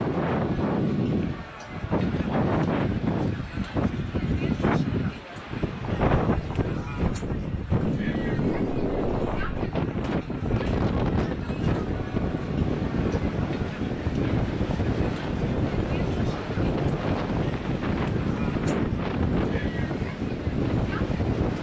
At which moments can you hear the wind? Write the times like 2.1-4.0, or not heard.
0.0-21.5.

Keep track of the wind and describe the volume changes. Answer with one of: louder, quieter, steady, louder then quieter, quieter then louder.
steady.